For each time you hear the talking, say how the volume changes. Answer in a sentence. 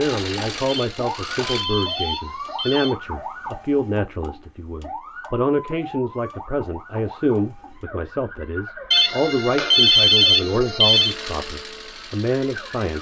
You can hear the talking from 0.0 to 12.9 s, at a steady volume.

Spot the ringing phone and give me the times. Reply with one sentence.
The ringing phone can be heard from 0.7 to 3.0 s and from 8.9 to 11.2 s.